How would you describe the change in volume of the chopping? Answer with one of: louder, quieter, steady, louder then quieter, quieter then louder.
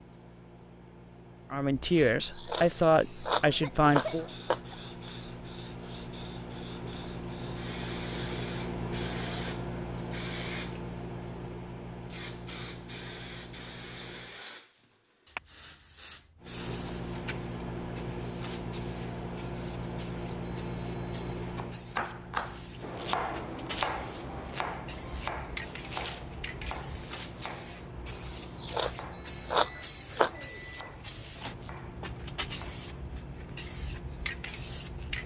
quieter.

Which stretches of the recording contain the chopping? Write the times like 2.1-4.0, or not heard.
21.5-32.9.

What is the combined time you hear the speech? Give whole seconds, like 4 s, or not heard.
3 s.